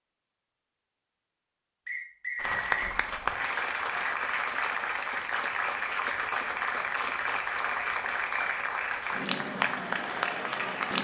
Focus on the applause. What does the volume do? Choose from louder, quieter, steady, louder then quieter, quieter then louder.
steady.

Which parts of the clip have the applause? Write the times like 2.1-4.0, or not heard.
2.4-10.9.